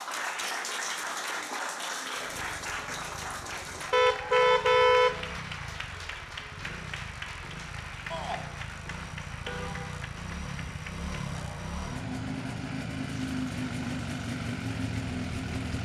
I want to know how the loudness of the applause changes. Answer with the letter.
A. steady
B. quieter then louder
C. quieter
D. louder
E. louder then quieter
C.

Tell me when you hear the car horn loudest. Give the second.
5 s.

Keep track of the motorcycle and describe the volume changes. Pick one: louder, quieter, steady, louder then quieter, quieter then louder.
louder.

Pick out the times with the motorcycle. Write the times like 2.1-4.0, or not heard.
2.1-15.8.